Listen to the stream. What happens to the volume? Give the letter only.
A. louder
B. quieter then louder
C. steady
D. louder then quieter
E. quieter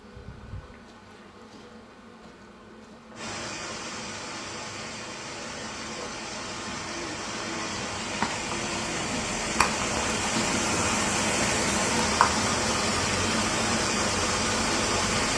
A.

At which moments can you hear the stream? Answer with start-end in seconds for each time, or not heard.
3.1-15.3.